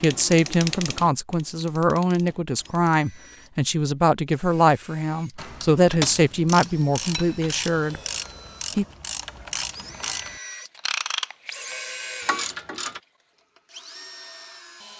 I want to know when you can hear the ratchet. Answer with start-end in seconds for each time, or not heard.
0.0-3.0, 5.3-13.0.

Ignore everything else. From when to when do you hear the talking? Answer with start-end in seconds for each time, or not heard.
0.0-8.0.